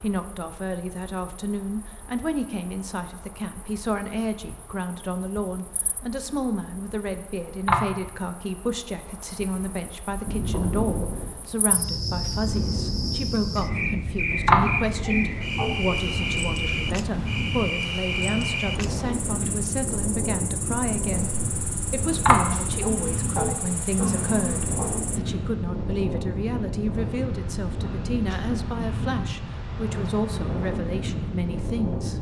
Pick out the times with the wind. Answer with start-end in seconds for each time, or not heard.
10.1-32.1.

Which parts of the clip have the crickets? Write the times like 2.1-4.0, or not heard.
0.0-25.2.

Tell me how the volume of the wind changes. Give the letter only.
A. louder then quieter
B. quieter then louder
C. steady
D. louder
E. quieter
C.